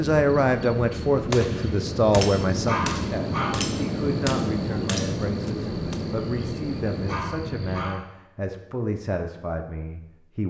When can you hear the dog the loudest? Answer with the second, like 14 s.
3 s.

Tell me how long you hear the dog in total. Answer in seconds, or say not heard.
2 s.